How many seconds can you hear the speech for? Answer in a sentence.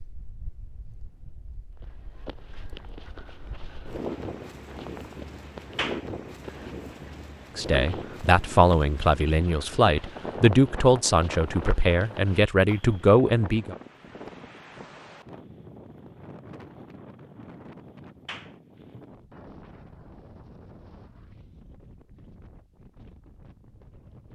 The speech can be heard for 6 seconds in total.